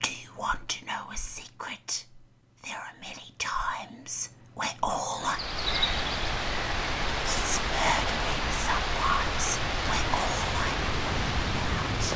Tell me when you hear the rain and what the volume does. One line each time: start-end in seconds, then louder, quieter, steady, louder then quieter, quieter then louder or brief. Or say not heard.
5.2-12.1 steady.